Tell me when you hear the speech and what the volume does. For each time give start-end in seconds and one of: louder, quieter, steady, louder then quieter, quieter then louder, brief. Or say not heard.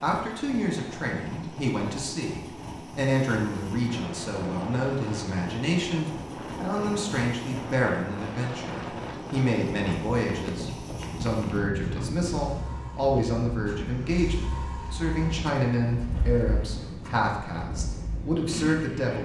0.0-19.2 steady.